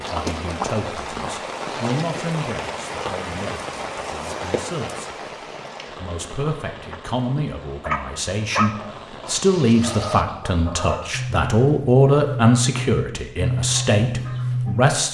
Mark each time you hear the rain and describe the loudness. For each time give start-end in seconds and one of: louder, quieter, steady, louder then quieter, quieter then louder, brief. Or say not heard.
0.0-10.2 quieter.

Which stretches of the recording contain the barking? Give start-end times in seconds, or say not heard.
6.9-8.7.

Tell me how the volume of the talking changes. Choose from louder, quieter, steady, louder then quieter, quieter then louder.
quieter then louder.